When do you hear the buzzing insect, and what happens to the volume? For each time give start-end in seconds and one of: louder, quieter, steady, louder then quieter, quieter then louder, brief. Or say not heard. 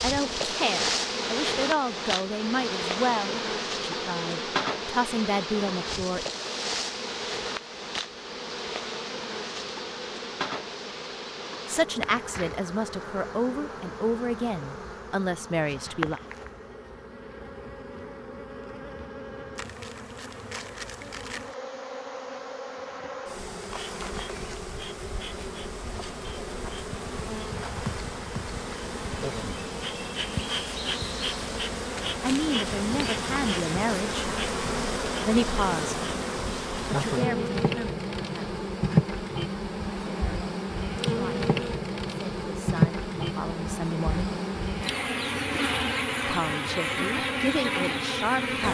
0.0-48.6 quieter then louder.